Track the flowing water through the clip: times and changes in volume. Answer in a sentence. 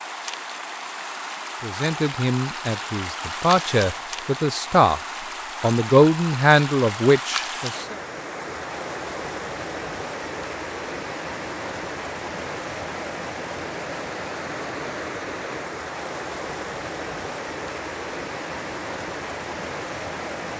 You can hear the flowing water from 0.0 to 20.5 s, at a steady volume.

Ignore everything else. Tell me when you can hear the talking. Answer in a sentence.
You can hear the talking from 1.6 to 5.0 s and from 5.6 to 8.0 s.